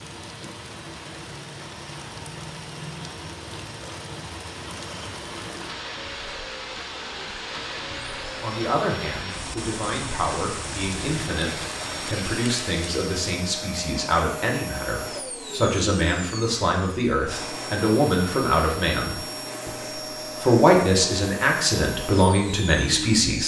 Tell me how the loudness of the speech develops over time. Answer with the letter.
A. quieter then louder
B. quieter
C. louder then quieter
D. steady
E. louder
E.